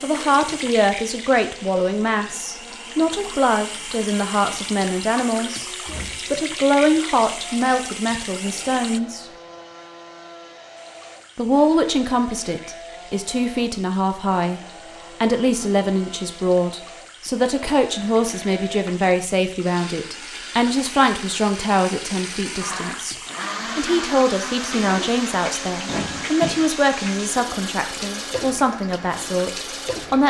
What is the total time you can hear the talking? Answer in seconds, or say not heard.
26 s.